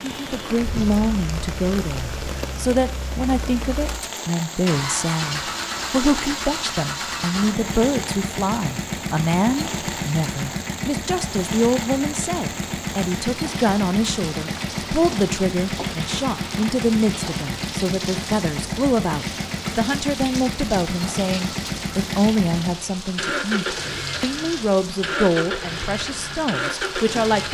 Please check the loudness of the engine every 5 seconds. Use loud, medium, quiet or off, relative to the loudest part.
medium, loud, loud, loud, loud, loud.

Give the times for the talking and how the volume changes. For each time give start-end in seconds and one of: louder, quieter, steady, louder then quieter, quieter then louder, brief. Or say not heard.
0.0-27.4 steady.